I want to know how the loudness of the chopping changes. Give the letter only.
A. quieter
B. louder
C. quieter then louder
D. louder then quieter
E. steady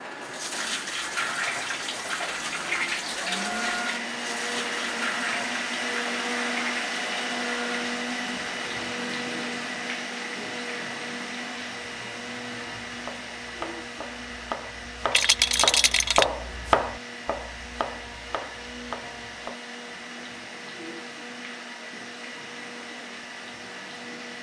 D.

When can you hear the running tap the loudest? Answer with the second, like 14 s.
3 s.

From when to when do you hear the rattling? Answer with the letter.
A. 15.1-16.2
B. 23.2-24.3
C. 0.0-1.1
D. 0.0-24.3
A.